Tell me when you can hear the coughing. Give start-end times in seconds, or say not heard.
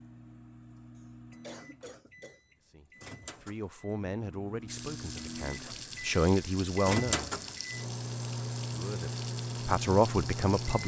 0.9-2.4.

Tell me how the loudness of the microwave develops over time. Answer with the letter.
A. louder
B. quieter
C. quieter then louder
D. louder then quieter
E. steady
A.